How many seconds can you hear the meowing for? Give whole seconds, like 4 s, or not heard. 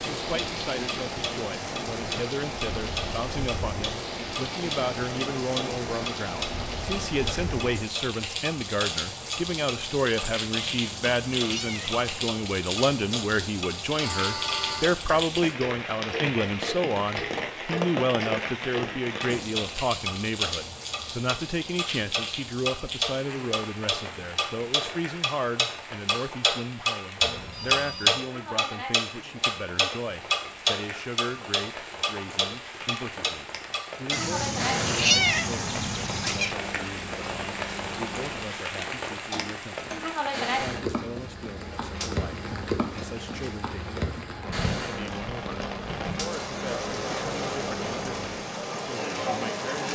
4 s.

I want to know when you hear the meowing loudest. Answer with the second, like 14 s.
35 s.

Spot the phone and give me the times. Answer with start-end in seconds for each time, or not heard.
14.0-14.8, 27.2-28.2.